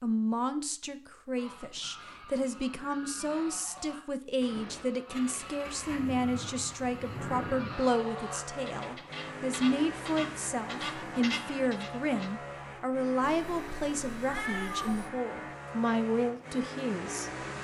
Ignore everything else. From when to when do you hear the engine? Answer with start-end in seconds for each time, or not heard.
5.1-17.5.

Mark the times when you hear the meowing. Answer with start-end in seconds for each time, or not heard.
13.2-15.1.